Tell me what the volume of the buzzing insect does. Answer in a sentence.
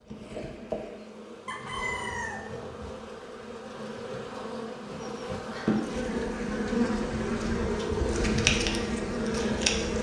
The loudness of the buzzing insect goes up.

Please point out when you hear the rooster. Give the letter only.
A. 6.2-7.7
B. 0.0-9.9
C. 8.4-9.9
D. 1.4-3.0
D.